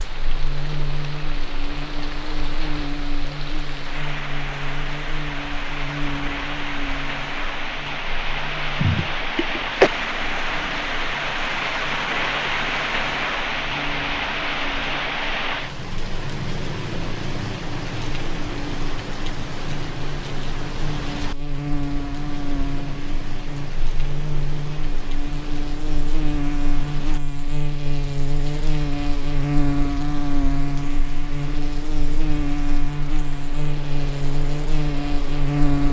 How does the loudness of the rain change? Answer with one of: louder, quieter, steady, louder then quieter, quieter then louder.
louder then quieter.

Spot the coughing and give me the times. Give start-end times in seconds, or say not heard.
8.8-9.9.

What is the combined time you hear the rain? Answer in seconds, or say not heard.
36 s.